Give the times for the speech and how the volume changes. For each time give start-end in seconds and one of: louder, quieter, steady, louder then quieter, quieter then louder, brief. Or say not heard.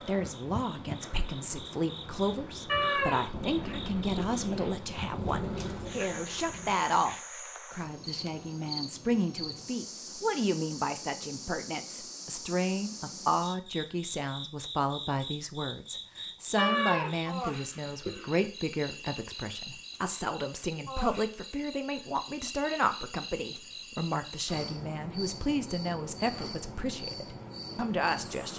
0.1-28.5 steady.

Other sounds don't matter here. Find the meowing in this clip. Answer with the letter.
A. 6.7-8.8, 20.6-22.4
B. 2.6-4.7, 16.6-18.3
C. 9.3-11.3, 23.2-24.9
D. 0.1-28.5
B.